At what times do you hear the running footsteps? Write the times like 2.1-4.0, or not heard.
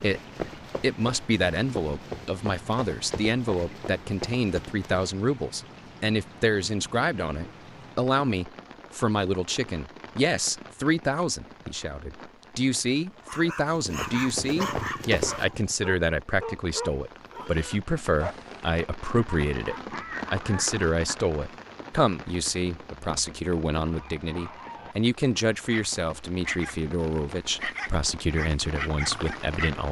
0.0-5.2, 13.8-15.5.